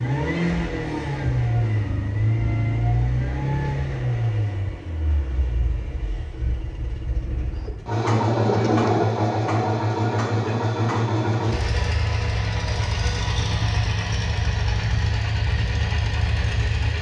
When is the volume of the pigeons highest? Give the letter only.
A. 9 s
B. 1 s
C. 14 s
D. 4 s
A.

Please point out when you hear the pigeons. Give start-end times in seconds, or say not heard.
7.5-9.1.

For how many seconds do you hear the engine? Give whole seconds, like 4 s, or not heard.
17 s.